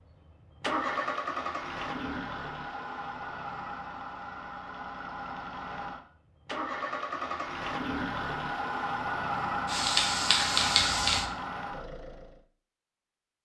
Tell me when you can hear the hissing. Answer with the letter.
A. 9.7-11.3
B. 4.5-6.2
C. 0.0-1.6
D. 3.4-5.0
A.